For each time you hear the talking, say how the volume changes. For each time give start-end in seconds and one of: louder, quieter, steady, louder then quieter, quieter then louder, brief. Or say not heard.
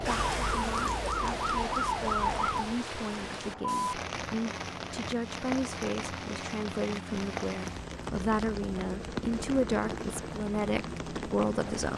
0.1-11.9 louder.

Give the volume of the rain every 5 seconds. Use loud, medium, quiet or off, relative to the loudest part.
loud, loud, medium.